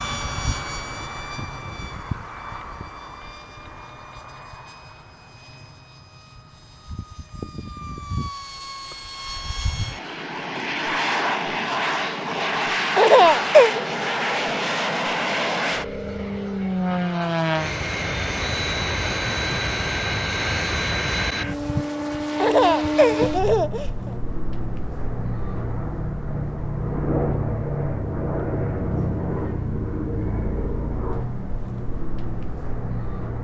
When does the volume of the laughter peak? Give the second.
13 s.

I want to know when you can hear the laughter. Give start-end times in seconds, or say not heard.
12.9-13.8, 22.4-24.1.